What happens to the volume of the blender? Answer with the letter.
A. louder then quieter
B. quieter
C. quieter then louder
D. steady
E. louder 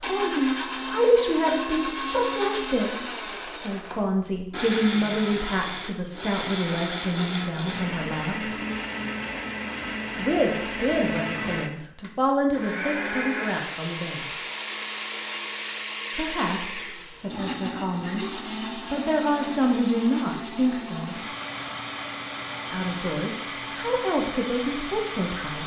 D.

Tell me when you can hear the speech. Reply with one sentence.
The speech can be heard from 0.0 to 8.5 s, from 10.2 to 14.3 s, from 16.1 to 21.2 s and from 22.7 to 25.6 s.